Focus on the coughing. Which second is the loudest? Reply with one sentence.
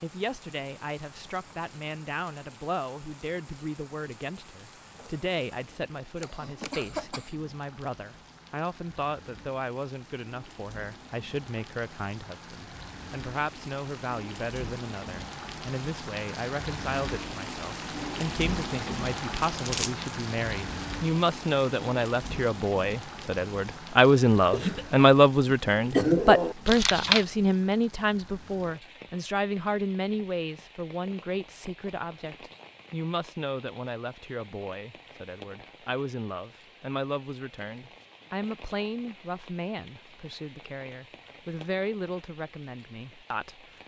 The loudest moment of the coughing is at 26 seconds.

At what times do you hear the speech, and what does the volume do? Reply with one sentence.
The speech can be heard from 0.0 to 43.6 s, getting louder then quieter.